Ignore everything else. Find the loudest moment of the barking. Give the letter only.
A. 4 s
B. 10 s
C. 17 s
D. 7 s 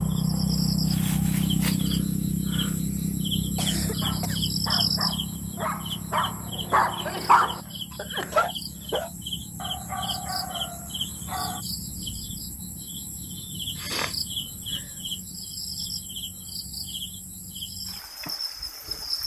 D.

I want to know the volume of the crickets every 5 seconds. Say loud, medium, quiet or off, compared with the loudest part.
loud, medium, medium, medium.